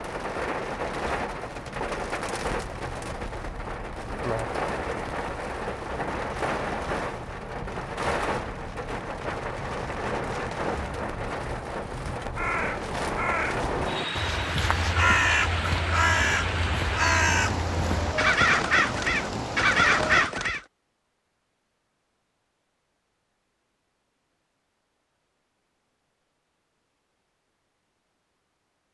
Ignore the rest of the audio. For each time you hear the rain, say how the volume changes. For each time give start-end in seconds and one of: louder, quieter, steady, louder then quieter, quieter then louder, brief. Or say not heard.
0.0-20.3 steady.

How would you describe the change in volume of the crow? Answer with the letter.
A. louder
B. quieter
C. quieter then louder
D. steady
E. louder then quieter
A.